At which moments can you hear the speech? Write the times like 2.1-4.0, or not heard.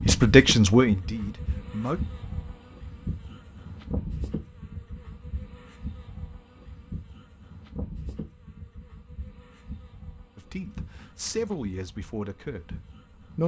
0.1-2.0, 10.3-13.4.